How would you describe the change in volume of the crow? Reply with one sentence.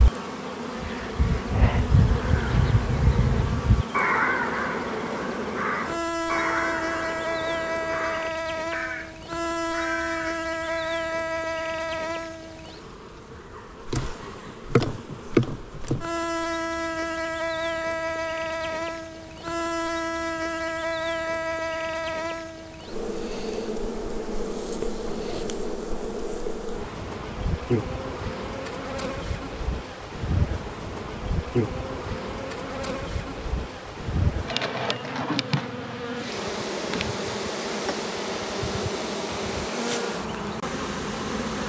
The volume of the crow goes down.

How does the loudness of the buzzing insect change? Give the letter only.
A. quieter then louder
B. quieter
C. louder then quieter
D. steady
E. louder
D.